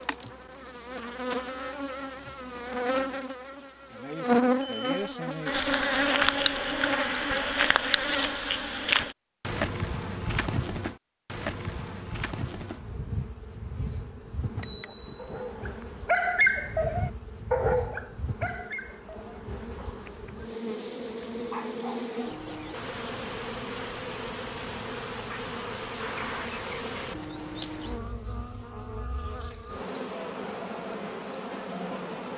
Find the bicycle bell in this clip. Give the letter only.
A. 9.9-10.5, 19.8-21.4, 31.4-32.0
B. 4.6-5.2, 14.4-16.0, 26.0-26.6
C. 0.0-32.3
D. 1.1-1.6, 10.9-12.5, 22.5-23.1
B.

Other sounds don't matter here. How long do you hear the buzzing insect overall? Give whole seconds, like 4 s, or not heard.
32 s.